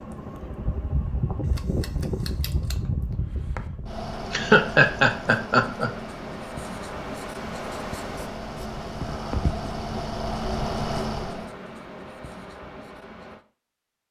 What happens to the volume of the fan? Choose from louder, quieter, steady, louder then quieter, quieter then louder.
quieter then louder.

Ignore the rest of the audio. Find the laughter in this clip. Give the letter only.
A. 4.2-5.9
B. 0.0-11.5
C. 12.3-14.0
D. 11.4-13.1
A.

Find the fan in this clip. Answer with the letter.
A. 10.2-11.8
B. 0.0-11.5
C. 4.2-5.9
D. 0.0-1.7
B.